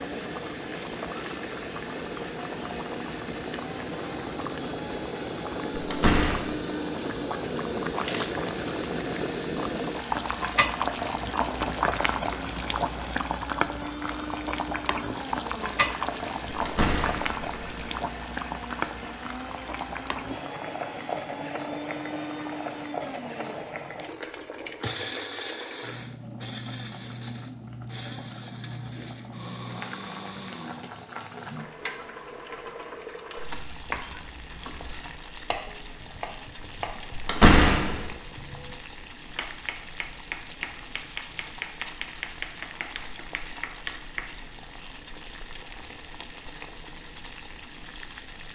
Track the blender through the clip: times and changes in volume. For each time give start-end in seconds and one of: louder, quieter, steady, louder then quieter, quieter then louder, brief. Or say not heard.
0.0-30.9 steady.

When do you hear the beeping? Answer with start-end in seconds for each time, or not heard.
not heard.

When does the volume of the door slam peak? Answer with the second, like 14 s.
38 s.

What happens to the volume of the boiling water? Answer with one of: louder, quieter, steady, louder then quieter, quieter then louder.
quieter.